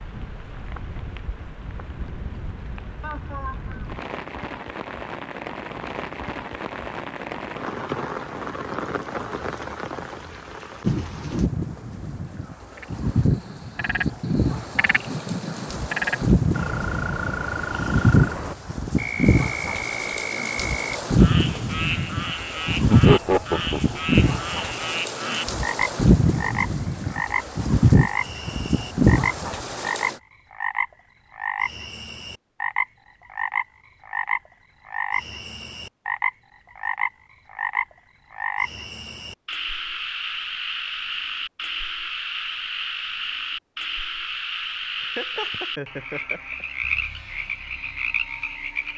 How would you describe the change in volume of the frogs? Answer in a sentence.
The volume of the frogs stays about the same.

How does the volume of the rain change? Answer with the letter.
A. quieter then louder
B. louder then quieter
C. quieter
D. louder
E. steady
D.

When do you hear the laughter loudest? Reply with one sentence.
The loudest moment of the laughter is at 23 seconds.